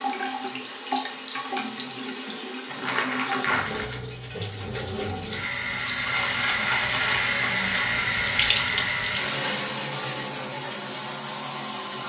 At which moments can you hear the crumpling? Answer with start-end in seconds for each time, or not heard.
2.6-4.0, 6.2-7.3.